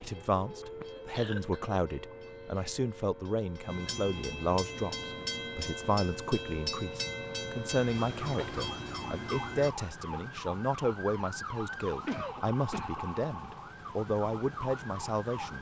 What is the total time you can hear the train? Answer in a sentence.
You can hear the train for 10 seconds altogether.